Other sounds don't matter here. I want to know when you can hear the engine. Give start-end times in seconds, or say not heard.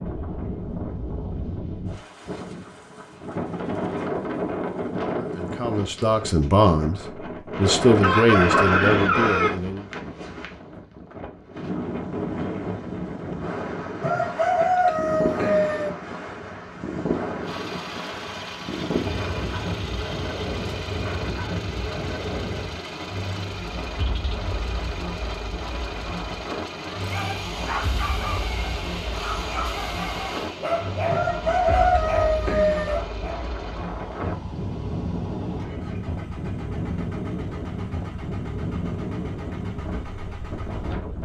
17.4-41.1.